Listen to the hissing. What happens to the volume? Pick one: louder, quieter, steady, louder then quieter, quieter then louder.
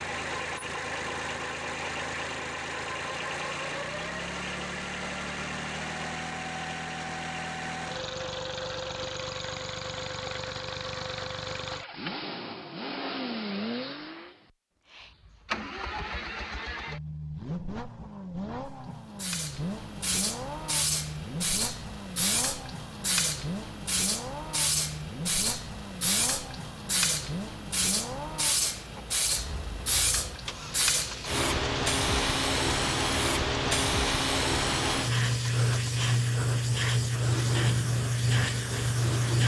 louder.